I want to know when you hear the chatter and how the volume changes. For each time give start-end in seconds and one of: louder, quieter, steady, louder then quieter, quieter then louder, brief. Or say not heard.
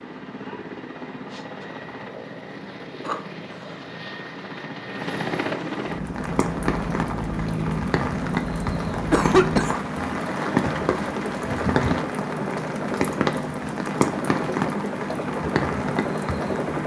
not heard.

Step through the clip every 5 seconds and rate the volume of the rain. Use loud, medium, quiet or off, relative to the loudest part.
off, loud, loud, loud.